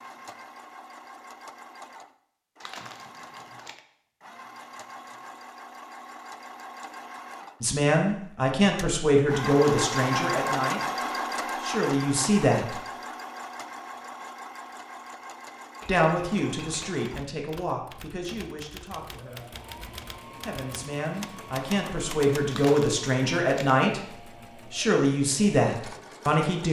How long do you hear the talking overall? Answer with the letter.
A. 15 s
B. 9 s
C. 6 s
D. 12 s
A.